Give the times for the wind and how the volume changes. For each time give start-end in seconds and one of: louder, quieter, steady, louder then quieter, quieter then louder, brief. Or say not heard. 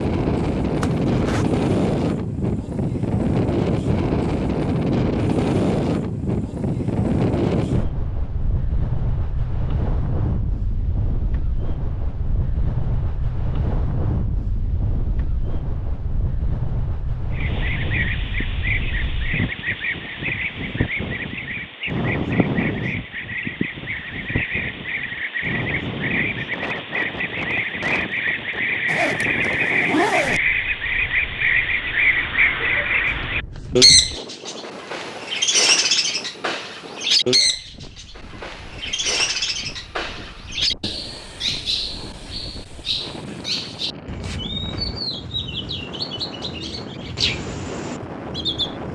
0.0-48.9 quieter.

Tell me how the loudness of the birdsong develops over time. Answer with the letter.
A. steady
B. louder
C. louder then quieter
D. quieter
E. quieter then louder
C.